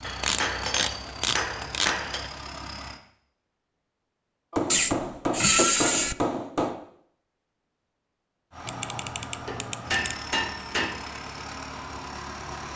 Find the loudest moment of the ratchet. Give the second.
6 s.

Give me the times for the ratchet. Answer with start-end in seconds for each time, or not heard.
0.2-1.9, 4.7-6.2, 8.7-10.2.